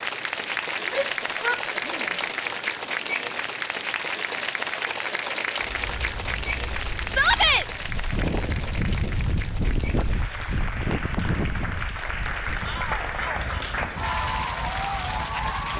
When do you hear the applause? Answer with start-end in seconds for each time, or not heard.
0.0-15.7.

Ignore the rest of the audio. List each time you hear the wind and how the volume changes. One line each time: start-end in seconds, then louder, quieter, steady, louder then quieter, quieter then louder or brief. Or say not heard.
5.5-15.7 louder then quieter.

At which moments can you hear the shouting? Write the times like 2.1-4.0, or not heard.
0.8-2.1, 7.0-7.7, 12.6-13.4.